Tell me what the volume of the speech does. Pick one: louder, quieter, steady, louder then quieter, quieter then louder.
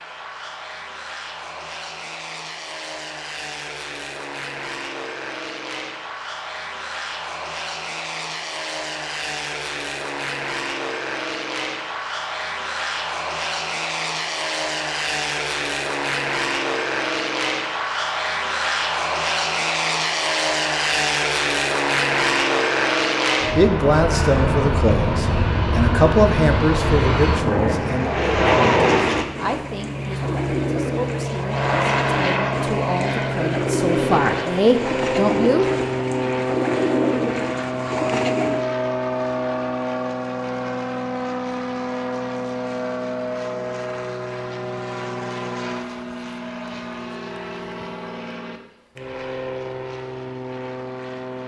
quieter then louder.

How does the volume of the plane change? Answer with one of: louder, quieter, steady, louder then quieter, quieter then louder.
louder then quieter.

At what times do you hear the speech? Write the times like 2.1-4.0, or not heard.
23.4-35.6.